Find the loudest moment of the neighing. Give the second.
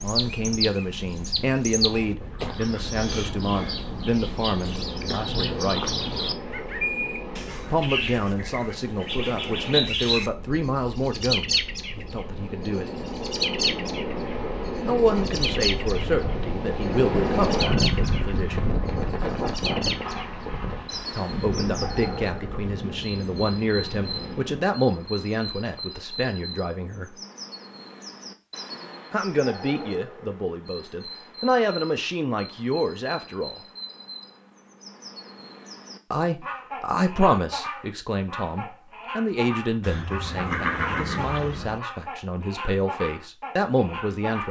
41 s.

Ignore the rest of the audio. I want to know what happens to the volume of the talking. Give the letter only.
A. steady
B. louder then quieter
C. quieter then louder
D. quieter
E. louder
A.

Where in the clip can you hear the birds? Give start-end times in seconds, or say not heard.
0.0-44.4.